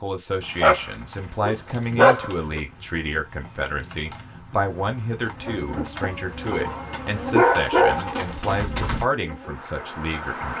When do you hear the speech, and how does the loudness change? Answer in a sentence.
You can hear the speech from 0.0 to 10.5 s, at a steady volume.